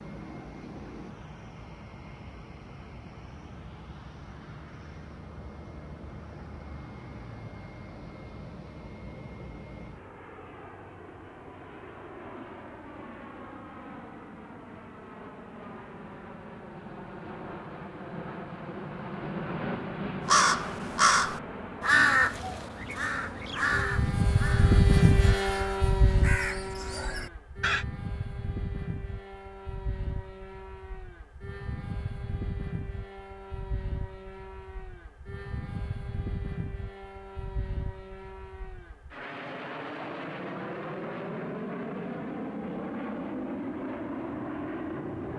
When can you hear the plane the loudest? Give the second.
25 s.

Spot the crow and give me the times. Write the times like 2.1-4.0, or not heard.
20.2-27.9.